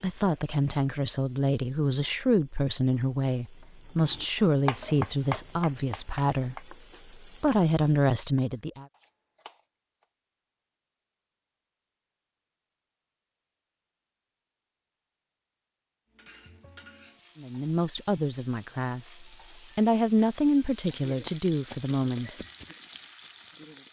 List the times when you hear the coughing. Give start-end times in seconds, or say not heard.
not heard.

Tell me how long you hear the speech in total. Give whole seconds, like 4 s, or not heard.
14 s.